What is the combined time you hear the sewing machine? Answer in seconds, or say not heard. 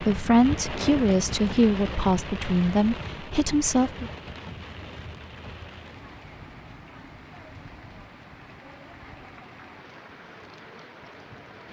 not heard.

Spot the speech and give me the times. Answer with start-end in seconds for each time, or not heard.
0.0-4.1.